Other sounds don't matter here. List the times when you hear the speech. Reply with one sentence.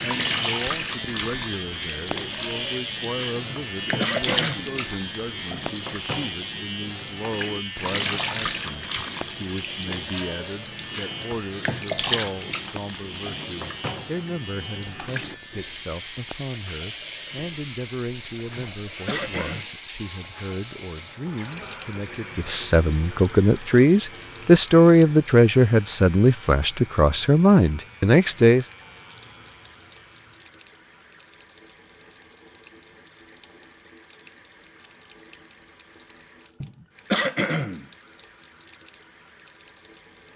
You can hear the speech from 0.0 to 28.6 s.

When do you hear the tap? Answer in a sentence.
You can hear the tap from 0.0 to 40.3 s.